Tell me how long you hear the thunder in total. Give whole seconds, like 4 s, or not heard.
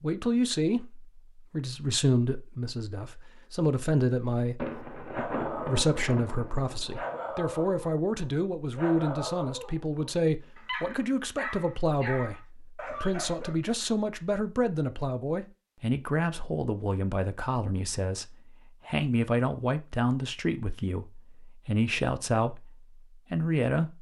3 s.